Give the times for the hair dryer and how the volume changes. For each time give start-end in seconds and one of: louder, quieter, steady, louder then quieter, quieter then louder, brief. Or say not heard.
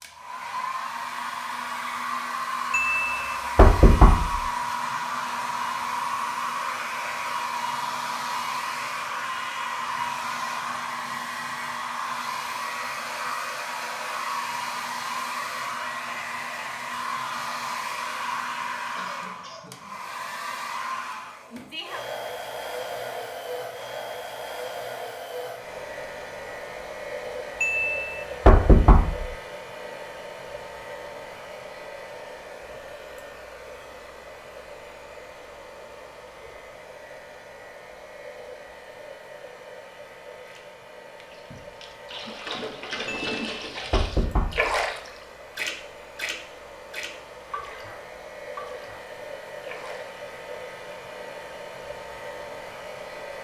0.0-53.3 quieter.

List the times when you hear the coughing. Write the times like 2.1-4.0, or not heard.
18.9-19.8.